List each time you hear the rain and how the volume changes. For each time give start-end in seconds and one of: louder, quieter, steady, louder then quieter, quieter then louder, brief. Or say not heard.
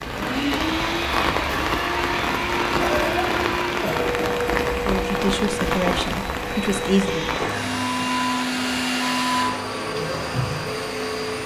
0.0-11.4 quieter.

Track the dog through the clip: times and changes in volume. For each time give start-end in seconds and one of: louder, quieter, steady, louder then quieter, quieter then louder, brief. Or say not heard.
not heard.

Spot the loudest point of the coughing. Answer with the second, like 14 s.
3 s.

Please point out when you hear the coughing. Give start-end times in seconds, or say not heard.
2.8-4.5.